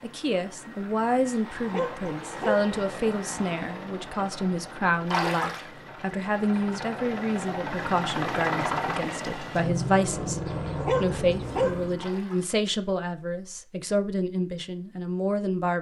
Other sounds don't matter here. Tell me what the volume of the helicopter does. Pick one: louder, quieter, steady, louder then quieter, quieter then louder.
louder.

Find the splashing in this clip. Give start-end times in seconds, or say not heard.
5.1-5.7, 11.9-12.6.